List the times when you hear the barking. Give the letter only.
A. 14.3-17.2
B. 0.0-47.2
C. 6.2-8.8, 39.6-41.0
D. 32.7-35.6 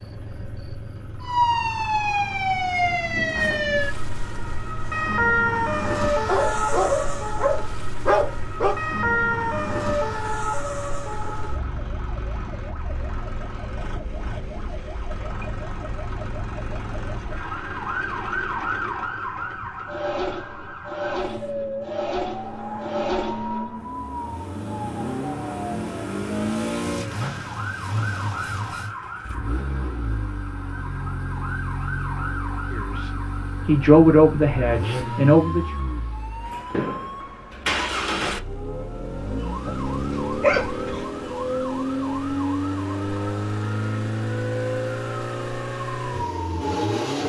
C.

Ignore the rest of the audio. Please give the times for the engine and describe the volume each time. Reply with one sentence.
The engine can be heard from 0.0 to 47.2 s, getting louder.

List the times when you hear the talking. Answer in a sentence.
You can hear the talking from 32.7 to 35.6 s.